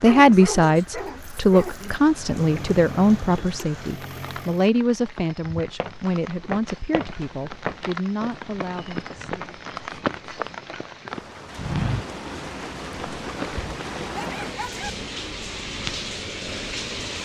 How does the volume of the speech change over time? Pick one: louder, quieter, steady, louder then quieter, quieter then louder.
quieter.